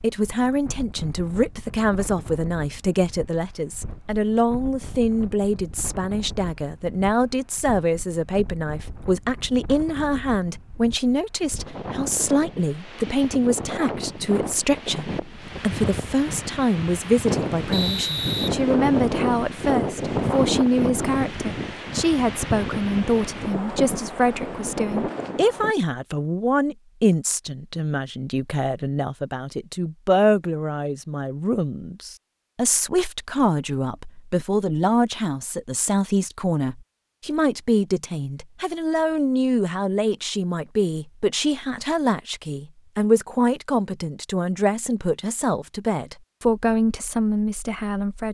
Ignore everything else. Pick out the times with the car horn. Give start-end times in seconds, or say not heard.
not heard.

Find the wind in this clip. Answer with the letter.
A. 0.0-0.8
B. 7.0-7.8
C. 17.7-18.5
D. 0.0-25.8
D.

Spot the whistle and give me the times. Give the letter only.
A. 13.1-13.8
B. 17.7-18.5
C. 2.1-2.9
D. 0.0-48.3
B.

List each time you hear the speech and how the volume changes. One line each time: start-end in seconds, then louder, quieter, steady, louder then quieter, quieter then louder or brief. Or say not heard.
0.0-48.3 steady.